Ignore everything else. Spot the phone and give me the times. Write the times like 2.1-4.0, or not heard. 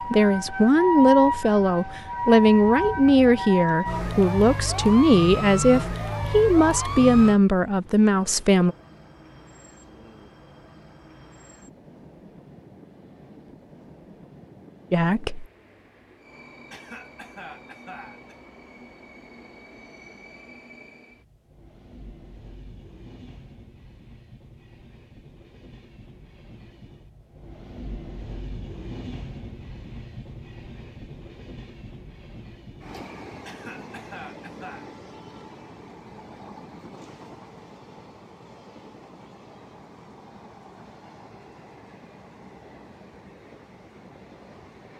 not heard.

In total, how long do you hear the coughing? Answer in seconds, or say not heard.
3 s.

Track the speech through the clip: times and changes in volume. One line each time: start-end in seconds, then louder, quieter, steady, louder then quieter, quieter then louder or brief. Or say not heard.
0.1-8.8 steady
14.9-15.4 brief.